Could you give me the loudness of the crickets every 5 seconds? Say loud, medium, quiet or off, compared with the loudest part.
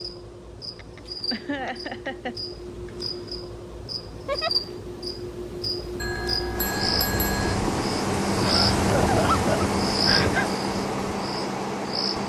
medium, loud, loud.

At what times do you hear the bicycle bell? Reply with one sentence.
You can hear the bicycle bell from 6.0 to 7.5 s.